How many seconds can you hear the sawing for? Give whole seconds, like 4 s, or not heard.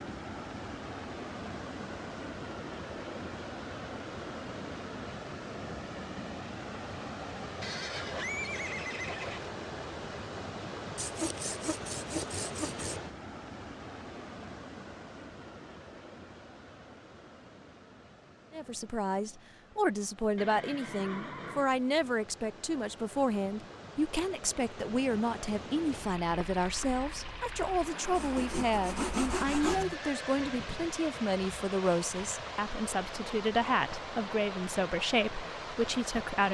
4 s.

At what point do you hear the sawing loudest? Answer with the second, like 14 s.
29 s.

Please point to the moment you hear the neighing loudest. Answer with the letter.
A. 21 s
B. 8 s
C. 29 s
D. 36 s
B.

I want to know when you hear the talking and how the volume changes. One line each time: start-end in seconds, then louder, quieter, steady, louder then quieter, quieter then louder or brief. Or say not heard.
18.5-36.4 steady.